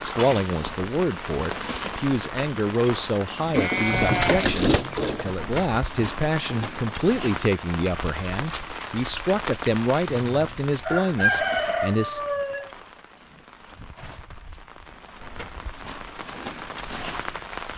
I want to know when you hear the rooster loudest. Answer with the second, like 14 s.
11 s.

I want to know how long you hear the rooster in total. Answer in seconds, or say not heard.
3 s.